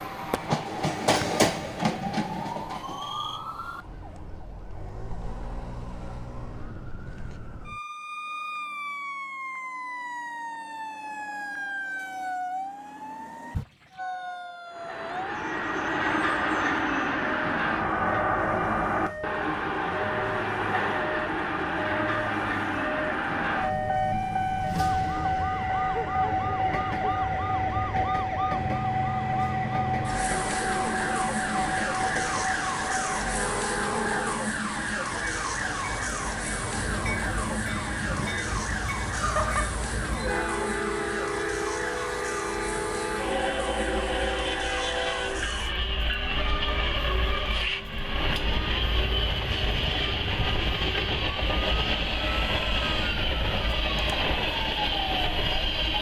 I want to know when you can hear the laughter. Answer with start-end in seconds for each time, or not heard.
39.1-39.7.